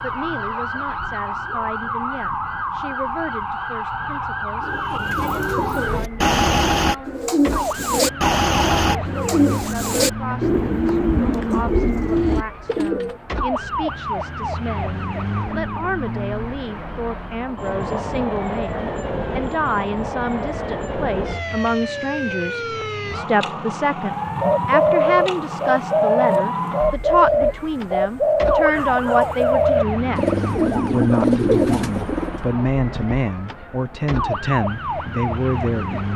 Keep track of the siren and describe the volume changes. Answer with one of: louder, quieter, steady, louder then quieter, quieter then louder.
steady.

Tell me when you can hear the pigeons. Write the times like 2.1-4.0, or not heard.
4.6-13.2, 24.2-32.5.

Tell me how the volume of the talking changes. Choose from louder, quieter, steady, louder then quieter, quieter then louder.
louder.